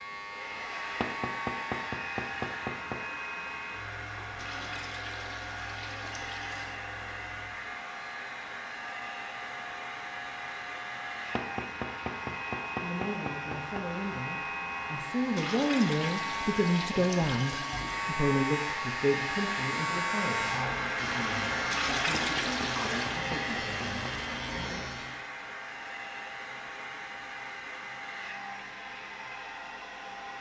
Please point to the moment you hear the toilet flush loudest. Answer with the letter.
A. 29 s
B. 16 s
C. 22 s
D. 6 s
C.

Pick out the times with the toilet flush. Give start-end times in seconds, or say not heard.
4.3-6.8, 15.3-18.0, 21.7-23.2.